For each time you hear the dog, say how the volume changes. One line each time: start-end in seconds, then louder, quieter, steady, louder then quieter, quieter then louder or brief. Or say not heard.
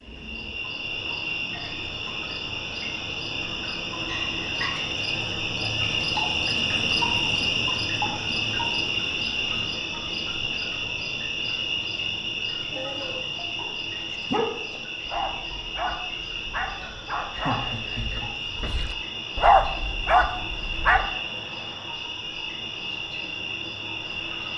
12.7-21.1 quieter then louder.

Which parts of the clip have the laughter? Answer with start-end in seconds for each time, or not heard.
4.0-4.8, 17.2-18.3.